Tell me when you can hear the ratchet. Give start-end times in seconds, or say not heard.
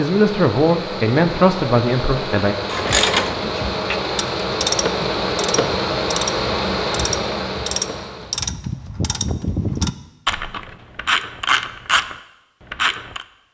2.6-13.2.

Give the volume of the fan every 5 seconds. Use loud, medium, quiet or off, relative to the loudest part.
loud, loud, off.